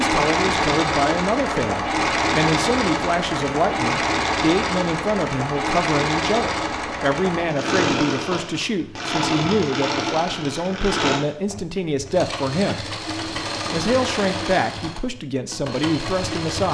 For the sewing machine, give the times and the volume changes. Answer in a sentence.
The sewing machine can be heard from 0.0 to 16.7 s, getting quieter.